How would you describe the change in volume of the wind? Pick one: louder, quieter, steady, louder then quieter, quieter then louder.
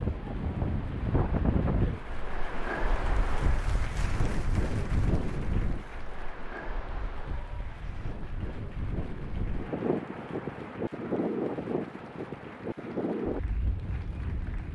quieter then louder.